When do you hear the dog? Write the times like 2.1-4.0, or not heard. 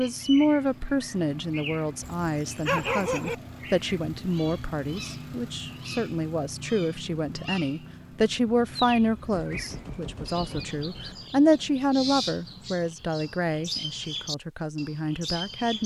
2.0-3.4.